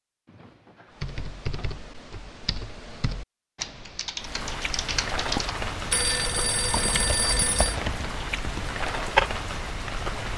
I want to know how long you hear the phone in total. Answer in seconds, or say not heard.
3 s.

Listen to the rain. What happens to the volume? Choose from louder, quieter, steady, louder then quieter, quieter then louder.
steady.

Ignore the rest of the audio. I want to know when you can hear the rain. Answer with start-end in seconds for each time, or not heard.
4.2-10.3.